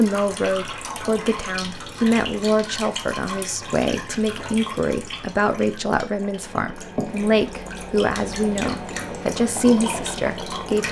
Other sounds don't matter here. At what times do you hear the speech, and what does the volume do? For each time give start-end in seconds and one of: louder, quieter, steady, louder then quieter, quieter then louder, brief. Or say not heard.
0.0-10.8 steady.